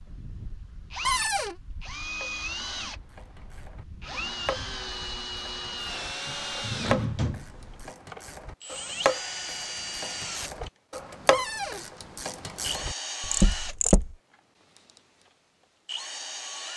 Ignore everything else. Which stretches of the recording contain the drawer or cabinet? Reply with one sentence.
You can hear the drawer or cabinet from 1.1 to 1.6 s, from 6.2 to 7.9 s and from 11.3 to 11.8 s.